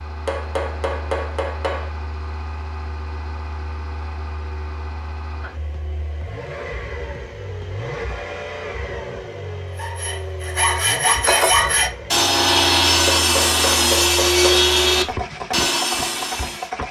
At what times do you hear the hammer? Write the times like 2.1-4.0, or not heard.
0.2-1.9, 13.1-14.7.